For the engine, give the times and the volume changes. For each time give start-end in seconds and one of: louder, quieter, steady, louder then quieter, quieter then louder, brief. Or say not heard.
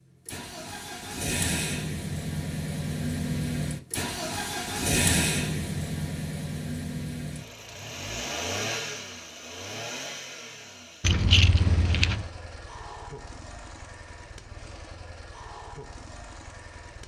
0.0-17.0 quieter.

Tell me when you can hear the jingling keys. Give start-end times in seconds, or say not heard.
11.0-12.2.